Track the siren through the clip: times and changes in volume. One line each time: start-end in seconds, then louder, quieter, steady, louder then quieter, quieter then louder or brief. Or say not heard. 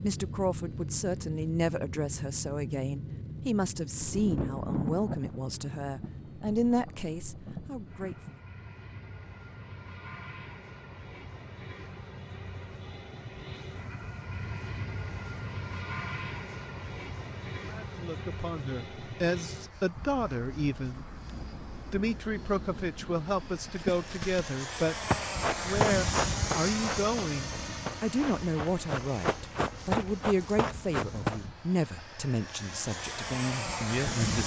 not heard.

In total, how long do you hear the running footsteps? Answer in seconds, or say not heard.
8 s.